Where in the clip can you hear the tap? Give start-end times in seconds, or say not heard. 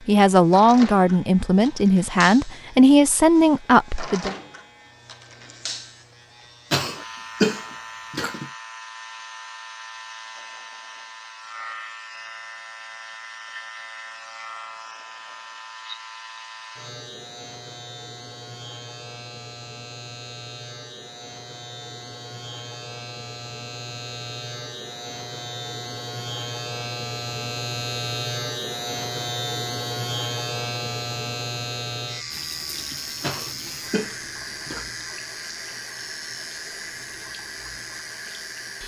32.3-38.8.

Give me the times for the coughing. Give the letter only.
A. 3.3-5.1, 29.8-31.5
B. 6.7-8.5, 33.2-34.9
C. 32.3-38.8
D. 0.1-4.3
B.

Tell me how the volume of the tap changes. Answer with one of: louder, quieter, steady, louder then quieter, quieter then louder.
steady.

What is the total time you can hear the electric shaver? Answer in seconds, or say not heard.
39 s.